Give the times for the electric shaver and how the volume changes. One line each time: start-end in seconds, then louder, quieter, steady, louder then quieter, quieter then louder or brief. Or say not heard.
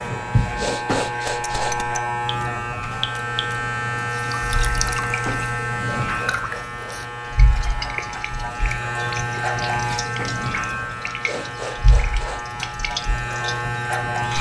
0.0-14.3 steady.